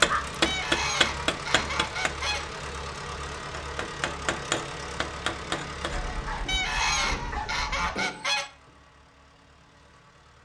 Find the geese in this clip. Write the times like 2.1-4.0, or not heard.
0.5-2.5, 6.5-8.5.